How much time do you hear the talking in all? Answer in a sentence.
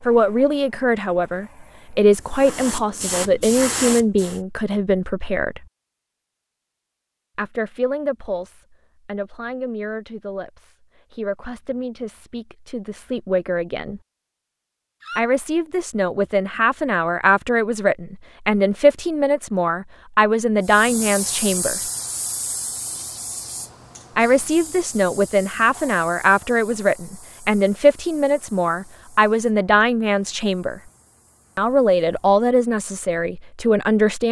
You can hear the talking for 28 seconds altogether.